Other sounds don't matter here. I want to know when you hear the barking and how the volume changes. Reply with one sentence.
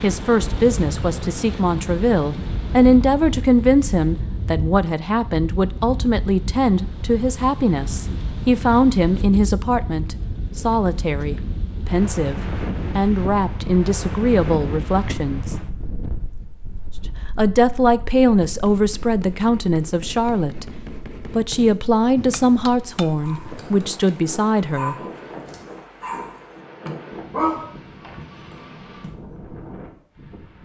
You can hear the barking from 23.2 to 29.1 s, getting louder then quieter.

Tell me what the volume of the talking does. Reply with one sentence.
The volume of the talking stays about the same.